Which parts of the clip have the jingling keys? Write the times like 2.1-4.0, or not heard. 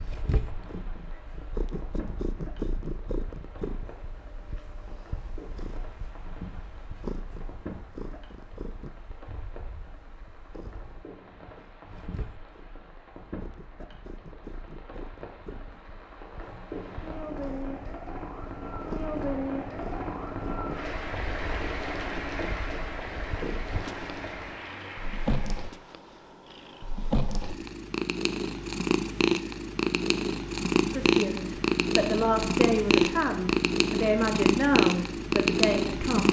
not heard.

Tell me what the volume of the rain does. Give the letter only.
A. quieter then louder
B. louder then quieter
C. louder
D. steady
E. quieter
C.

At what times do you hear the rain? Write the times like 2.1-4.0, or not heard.
0.0-25.8.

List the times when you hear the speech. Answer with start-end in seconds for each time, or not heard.
30.9-36.2.